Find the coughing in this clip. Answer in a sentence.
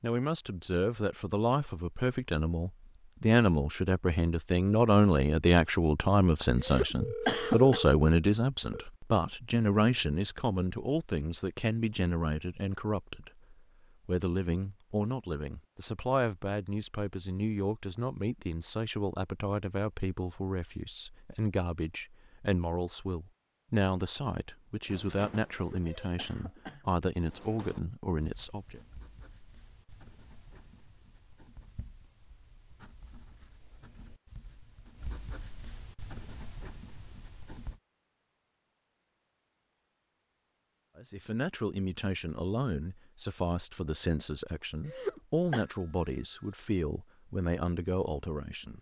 The coughing can be heard from 6.6 to 7.8 s, from 25.5 to 26.9 s and from 44.9 to 45.6 s.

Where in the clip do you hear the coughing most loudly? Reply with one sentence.
The loudest moment of the coughing is at 7 seconds.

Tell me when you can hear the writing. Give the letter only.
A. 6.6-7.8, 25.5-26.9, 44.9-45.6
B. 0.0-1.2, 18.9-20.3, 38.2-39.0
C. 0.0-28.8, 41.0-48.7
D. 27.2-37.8
D.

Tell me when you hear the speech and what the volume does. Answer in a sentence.
You can hear the speech from 0.0 to 28.8 s, getting quieter; and from 41.0 to 48.7 s, at a steady volume.